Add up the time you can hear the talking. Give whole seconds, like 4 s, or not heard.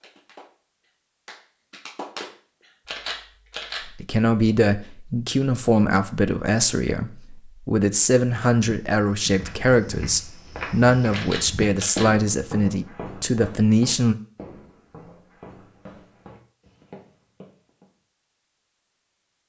10 s.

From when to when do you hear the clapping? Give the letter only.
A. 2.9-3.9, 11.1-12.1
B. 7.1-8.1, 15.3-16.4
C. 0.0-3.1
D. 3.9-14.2
C.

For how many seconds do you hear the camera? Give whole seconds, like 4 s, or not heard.
2 s.